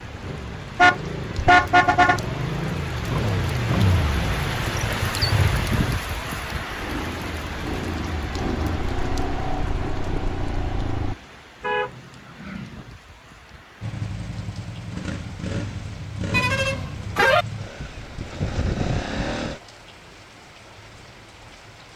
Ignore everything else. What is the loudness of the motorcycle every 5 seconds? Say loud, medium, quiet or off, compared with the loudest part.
loud, loud, loud, loud, off.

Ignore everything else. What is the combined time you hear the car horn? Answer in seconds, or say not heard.
4 s.